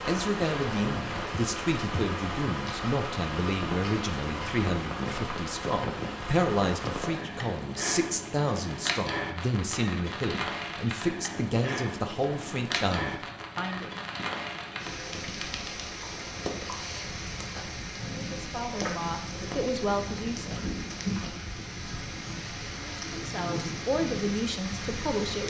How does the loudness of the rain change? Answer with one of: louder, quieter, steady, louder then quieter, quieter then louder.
steady.